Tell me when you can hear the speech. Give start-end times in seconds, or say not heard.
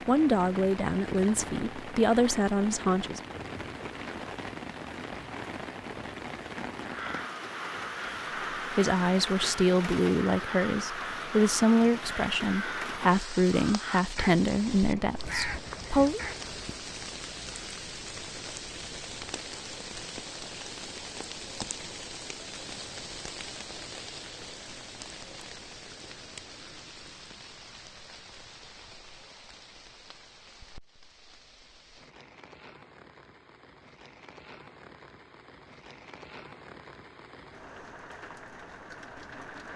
0.1-3.2, 8.7-16.2.